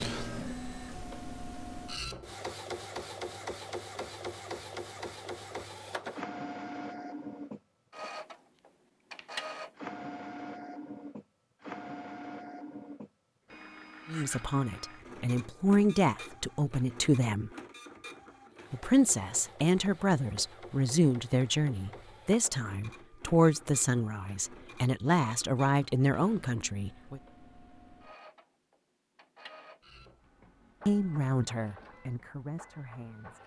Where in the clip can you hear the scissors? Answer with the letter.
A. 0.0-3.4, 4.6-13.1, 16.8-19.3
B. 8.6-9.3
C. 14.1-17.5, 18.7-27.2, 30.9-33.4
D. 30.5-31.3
B.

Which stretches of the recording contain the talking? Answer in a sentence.
The talking can be heard from 14.1 to 17.5 s, from 18.7 to 27.2 s and from 30.9 to 33.4 s.